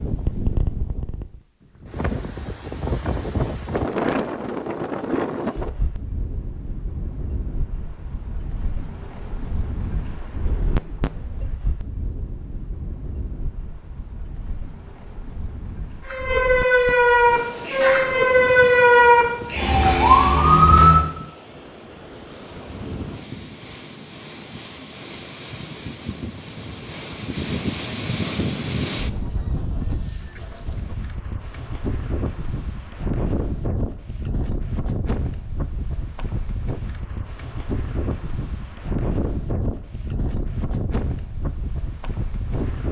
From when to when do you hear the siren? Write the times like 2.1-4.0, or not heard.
16.0-21.1.